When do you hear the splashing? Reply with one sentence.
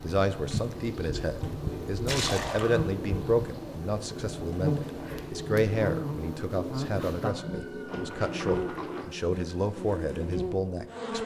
The splashing can be heard from 2.0 to 2.8 s and from 7.8 to 9.1 s.